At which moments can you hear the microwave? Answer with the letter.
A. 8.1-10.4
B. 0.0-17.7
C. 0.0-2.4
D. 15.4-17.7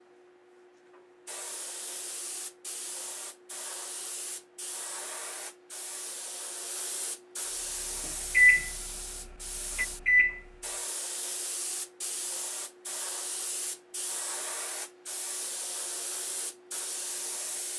A.